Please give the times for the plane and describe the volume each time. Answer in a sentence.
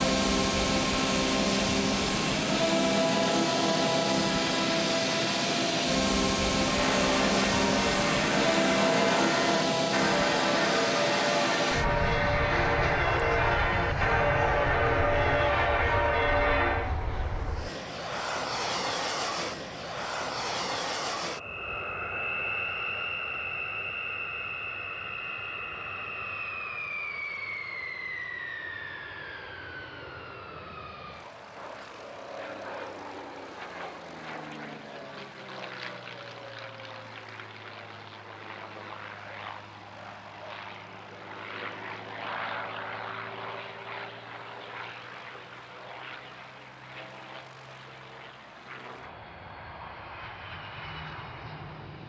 You can hear the plane from 0.0 to 52.0 s, getting quieter.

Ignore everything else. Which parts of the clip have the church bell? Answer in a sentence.
The church bell can be heard from 6.5 to 16.9 s.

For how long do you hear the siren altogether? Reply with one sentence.
You can't hear the siren here.